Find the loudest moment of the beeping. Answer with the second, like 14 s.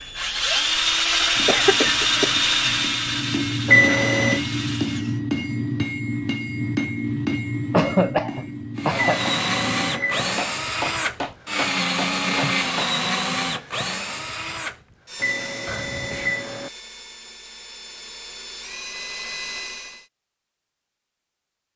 4 s.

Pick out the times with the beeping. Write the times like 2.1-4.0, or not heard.
3.6-4.4, 8.9-10.4, 15.2-16.7.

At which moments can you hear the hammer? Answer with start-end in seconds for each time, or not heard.
1.4-12.9.